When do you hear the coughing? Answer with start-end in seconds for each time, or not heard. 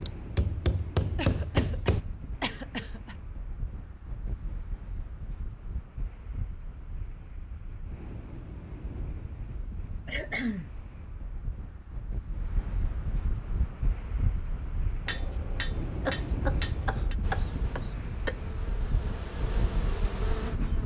1.1-3.1, 10.1-10.7, 16.1-18.4.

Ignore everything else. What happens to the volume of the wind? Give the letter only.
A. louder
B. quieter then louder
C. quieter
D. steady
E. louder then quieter
A.